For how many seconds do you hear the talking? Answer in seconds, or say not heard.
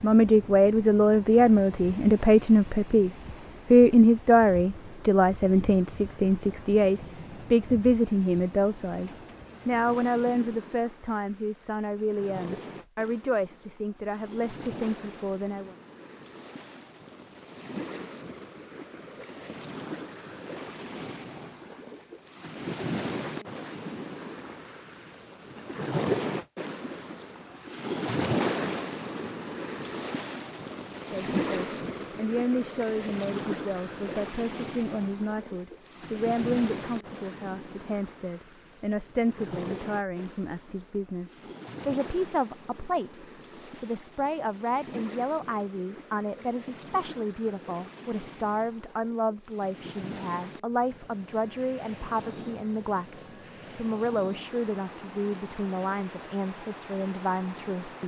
43 s.